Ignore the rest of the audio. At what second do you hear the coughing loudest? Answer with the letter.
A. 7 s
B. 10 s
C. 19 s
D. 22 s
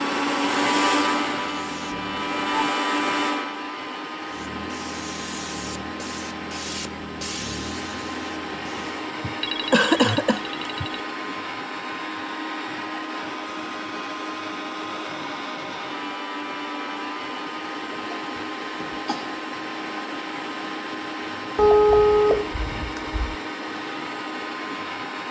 B.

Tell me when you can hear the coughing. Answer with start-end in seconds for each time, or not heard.
9.2-10.8, 17.9-19.4.